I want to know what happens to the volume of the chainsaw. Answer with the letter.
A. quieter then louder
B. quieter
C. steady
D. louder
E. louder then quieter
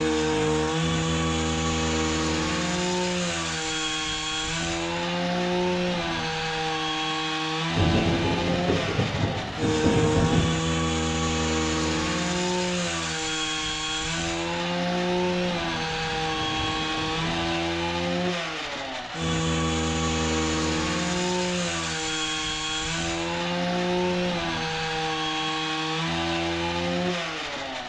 C.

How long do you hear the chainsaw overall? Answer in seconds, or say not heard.
28 s.